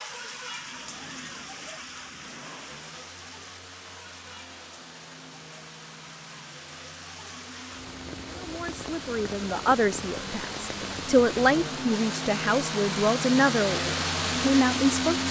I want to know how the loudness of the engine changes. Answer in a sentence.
The loudness of the engine goes up.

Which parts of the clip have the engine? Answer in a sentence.
The engine can be heard from 0.0 to 15.2 s.